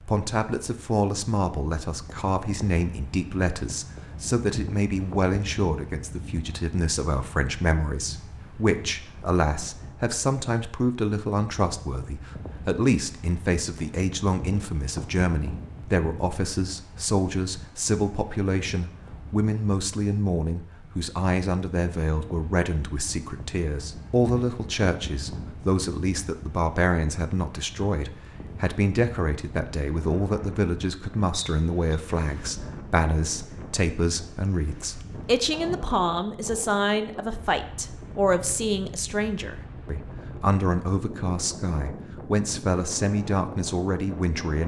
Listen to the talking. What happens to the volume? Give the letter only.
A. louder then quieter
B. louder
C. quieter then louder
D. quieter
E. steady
E.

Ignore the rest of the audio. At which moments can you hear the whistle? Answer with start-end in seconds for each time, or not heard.
31.3-31.9.